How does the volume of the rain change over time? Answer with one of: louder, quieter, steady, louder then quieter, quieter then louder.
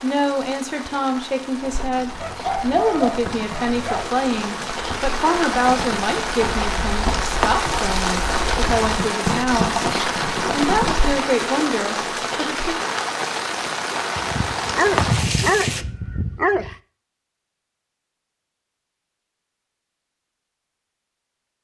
louder.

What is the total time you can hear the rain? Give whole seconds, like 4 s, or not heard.
16 s.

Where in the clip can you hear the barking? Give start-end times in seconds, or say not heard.
2.2-4.1, 14.2-16.8.